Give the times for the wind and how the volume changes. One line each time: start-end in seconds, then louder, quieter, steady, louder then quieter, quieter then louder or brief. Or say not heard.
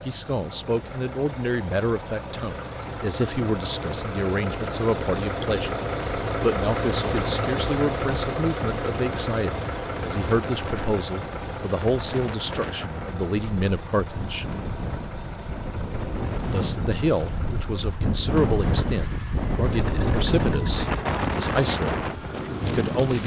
9.8-23.2 louder.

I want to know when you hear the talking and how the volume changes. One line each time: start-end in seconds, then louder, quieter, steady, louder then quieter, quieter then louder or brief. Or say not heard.
0.1-5.8 steady
6.4-14.4 steady
16.5-23.2 steady.